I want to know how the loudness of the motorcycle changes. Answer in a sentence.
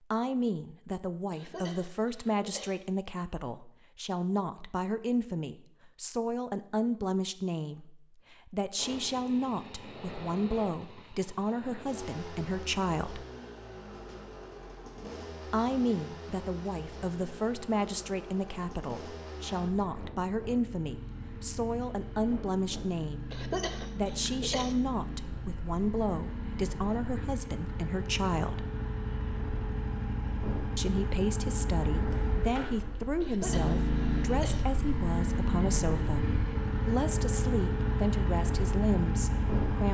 The loudness of the motorcycle goes up.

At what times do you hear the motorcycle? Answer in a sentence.
You can hear the motorcycle from 8.8 to 39.8 s.